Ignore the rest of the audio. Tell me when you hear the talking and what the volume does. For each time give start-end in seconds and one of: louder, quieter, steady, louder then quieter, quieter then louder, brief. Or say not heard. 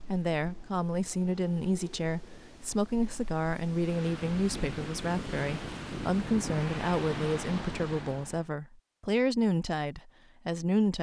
0.1-10.9 steady.